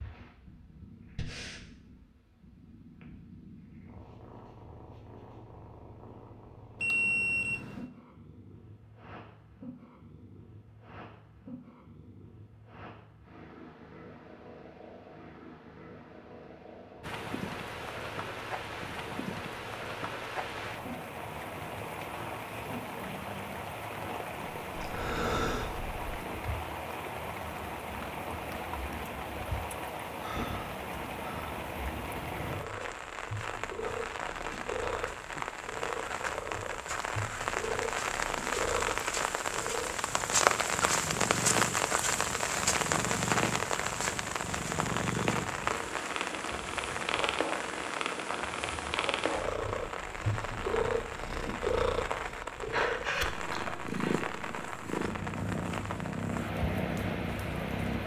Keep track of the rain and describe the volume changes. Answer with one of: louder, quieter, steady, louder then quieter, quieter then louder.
louder then quieter.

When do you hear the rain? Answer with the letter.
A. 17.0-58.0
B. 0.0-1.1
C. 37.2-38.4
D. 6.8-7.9
A.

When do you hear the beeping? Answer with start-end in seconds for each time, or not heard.
6.8-7.9.